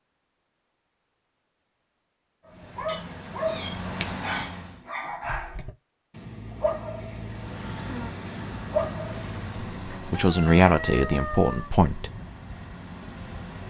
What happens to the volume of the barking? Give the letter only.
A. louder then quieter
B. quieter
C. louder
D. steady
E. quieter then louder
E.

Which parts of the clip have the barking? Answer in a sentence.
The barking can be heard from 2.5 to 9.8 s.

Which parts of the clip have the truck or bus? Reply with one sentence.
You can hear the truck or bus from 2.5 to 4.8 s and from 7.2 to 13.6 s.